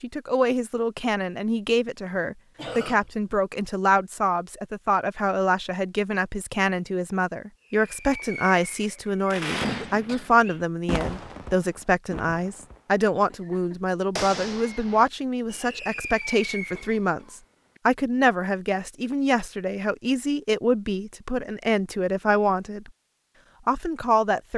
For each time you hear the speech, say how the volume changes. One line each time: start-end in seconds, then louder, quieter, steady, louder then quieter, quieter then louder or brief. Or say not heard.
0.0-22.9 steady
23.6-24.5 brief.